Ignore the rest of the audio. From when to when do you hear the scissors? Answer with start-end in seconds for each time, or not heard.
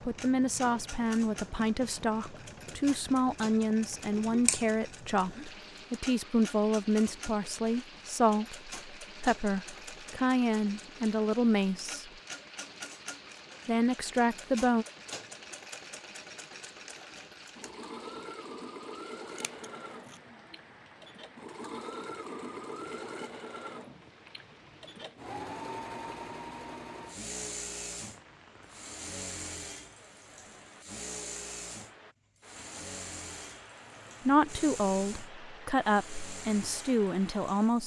4.5-5.4, 19.3-20.2.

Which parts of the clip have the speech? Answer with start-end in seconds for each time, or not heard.
0.0-12.1, 13.7-14.8, 34.2-37.8.